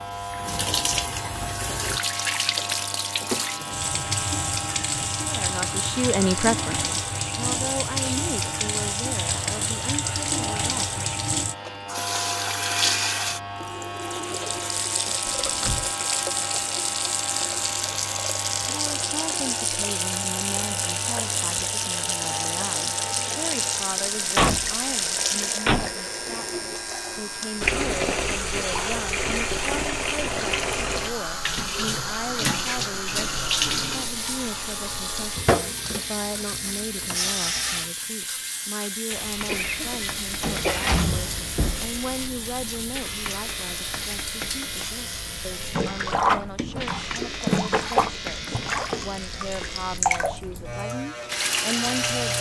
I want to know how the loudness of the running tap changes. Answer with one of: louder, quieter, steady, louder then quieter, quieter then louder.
steady.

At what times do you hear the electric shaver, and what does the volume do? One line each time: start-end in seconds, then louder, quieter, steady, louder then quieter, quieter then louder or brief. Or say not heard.
0.0-52.3 steady.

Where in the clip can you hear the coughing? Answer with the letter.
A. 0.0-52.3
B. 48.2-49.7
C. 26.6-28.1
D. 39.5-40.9
D.